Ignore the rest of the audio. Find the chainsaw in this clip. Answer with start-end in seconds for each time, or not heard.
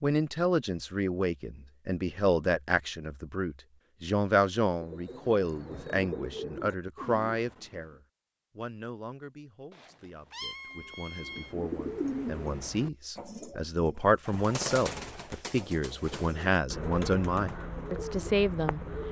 not heard.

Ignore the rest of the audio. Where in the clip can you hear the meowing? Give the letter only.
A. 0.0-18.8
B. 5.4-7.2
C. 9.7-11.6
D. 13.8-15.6
C.